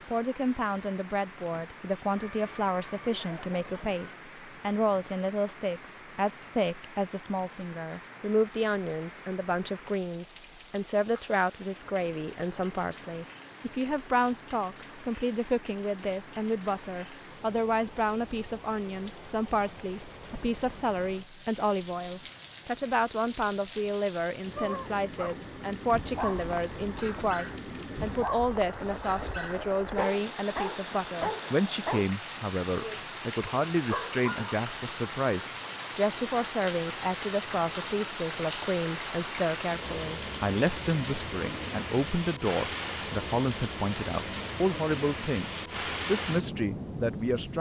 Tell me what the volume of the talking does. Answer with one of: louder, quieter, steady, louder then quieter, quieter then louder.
steady.